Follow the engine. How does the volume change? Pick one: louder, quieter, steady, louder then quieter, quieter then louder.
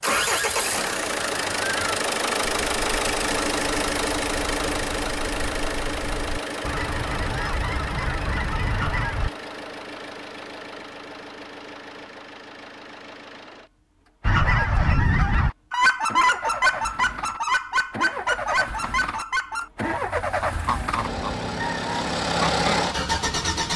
quieter then louder.